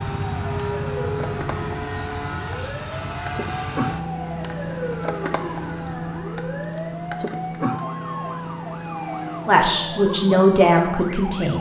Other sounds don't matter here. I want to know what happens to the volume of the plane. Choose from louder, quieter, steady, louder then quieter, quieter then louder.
quieter.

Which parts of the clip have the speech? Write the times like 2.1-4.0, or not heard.
9.4-11.5.